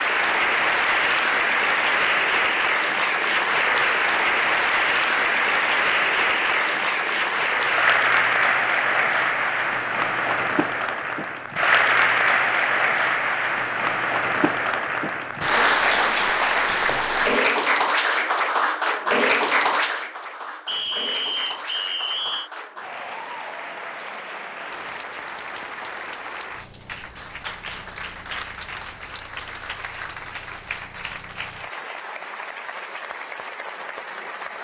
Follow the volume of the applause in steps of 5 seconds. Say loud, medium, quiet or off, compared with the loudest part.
loud, loud, loud, loud, quiet, quiet, quiet.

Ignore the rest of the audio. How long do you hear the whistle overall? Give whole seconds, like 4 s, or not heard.
2 s.